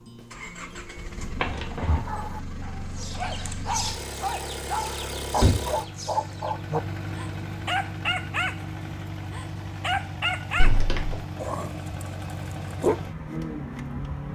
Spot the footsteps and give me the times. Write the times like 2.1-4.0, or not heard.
not heard.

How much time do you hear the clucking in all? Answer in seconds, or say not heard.
4 s.